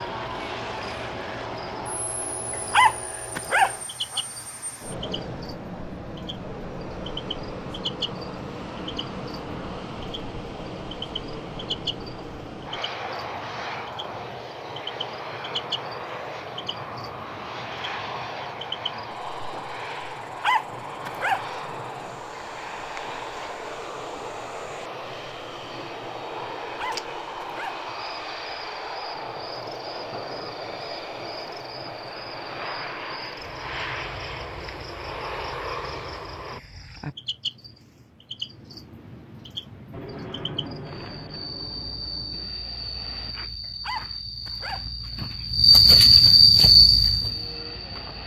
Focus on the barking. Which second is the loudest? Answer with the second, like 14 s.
3 s.